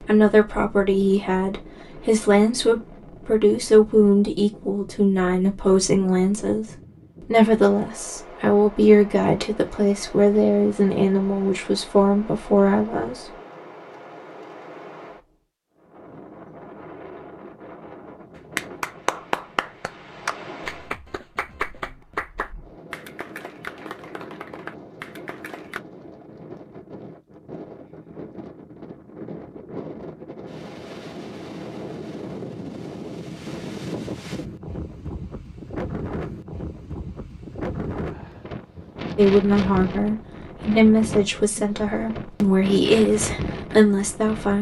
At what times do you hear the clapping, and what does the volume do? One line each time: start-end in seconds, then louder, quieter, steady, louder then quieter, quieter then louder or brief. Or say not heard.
18.6-25.8 quieter.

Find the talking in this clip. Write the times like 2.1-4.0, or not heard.
0.0-13.3, 39.1-44.5.